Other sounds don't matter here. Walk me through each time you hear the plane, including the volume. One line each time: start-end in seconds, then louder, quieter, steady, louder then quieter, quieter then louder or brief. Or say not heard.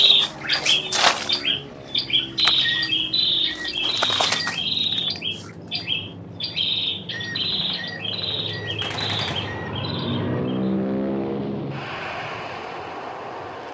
0.0-13.6 louder.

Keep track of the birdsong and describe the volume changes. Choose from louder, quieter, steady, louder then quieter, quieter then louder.
quieter.